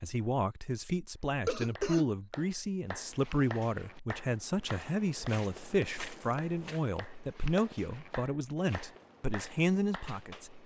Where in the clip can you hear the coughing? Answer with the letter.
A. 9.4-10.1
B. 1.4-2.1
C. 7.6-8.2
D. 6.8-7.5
B.